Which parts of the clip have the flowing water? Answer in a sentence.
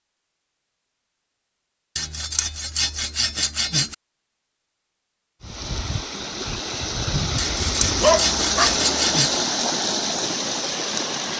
The flowing water can be heard from 5.4 to 11.3 s.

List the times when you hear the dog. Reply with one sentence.
The dog can be heard from 7.5 to 8.8 s.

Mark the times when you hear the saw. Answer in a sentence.
The saw can be heard from 1.9 to 4.0 s and from 7.3 to 9.4 s.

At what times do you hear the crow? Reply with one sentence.
The crow can't be heard in this clip.